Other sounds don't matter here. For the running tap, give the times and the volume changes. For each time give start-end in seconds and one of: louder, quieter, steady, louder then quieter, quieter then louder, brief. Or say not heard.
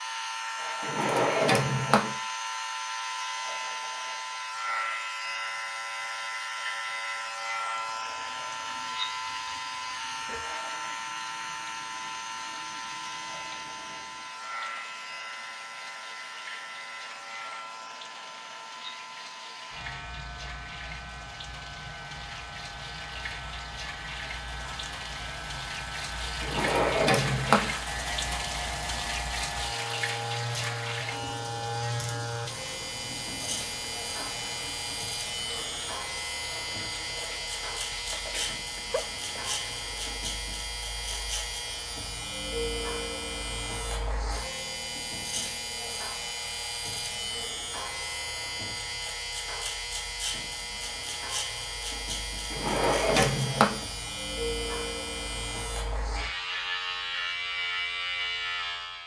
7.8-40.2 louder then quieter.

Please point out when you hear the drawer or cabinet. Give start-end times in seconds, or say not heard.
0.8-2.1, 26.4-27.8, 52.5-53.9.